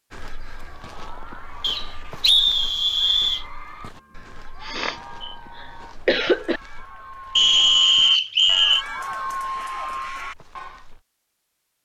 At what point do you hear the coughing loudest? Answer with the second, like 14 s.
6 s.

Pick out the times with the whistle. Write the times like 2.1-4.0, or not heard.
1.6-3.5, 7.3-8.8.